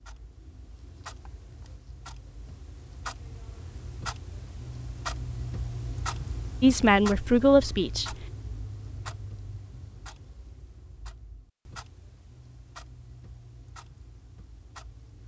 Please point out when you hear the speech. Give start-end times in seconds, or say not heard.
6.6-8.1.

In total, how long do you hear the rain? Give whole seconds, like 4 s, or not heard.
not heard.